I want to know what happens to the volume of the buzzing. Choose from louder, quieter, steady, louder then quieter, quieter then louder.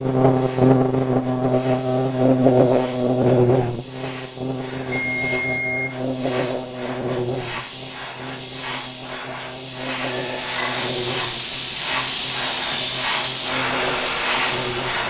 quieter.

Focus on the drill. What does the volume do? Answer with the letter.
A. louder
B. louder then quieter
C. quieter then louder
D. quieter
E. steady
E.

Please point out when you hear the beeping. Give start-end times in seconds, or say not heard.
4.8-5.9, 10.1-10.9.